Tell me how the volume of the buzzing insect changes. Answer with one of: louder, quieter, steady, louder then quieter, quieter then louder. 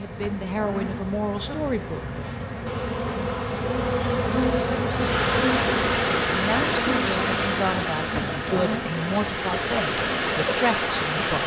louder then quieter.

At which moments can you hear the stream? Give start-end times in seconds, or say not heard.
4.9-11.4.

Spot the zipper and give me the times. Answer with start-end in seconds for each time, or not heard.
0.2-1.1, 8.1-8.8.